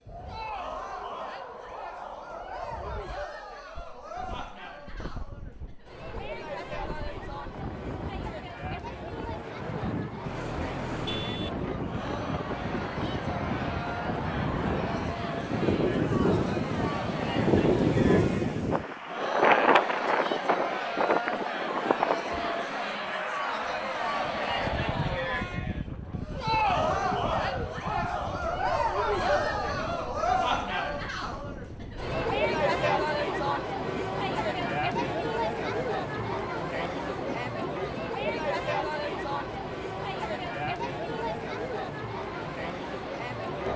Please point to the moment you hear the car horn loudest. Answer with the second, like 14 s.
11 s.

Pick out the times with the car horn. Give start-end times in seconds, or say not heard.
10.2-12.2.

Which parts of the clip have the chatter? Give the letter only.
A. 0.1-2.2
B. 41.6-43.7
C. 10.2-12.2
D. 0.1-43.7
D.